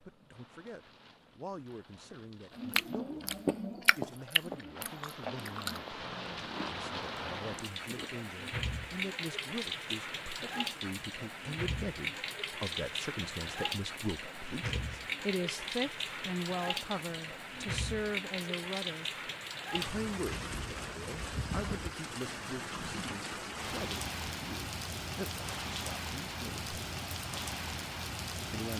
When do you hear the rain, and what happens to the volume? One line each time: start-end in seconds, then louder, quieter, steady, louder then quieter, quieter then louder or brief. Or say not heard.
0.0-28.7 louder.